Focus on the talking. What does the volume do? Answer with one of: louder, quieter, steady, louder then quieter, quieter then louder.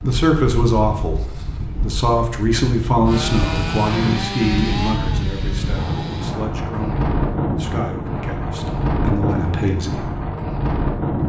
quieter.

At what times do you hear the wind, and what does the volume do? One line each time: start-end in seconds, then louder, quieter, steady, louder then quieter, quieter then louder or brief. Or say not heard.
0.0-11.2 louder.